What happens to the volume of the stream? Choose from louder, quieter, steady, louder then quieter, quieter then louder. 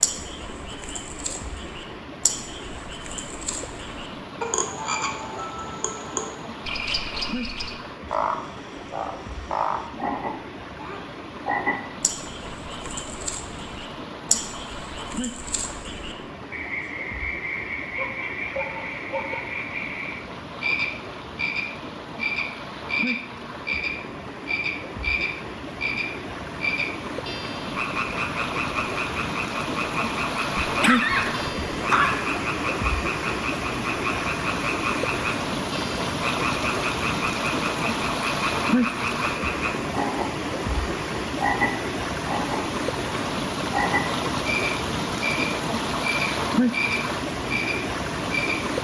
louder.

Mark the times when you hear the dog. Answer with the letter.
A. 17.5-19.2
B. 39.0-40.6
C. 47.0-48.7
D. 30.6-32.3
D.